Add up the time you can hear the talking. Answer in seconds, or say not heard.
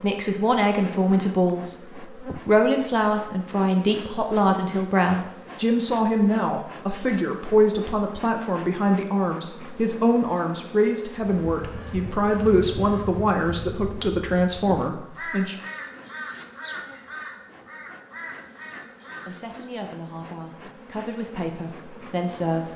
19 s.